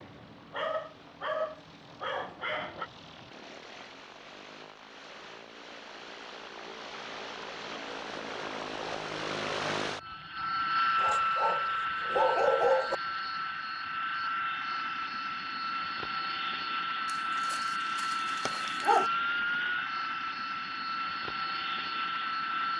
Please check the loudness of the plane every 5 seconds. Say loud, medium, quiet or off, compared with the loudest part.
quiet, medium, loud, loud, loud.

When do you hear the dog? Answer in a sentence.
The dog can be heard from 0.5 to 2.9 s, from 10.9 to 12.9 s and from 17.1 to 19.1 s.